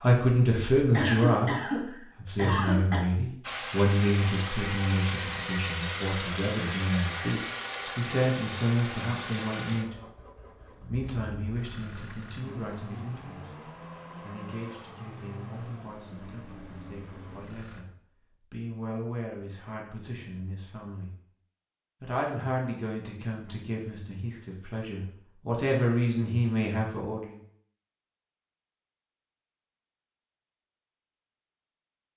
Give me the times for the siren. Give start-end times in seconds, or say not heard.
not heard.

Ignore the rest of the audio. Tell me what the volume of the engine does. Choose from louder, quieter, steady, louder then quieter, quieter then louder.
quieter.